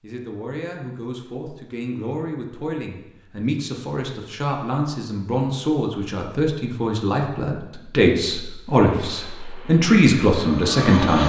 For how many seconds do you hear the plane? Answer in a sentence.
You can hear the plane for 2 seconds altogether.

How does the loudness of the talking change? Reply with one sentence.
The volume of the talking goes up.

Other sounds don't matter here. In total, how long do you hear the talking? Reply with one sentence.
The talking can be heard for 11 seconds in total.